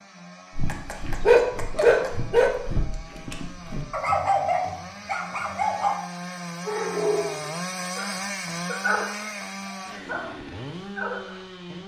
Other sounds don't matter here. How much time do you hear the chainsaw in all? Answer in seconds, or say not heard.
12 s.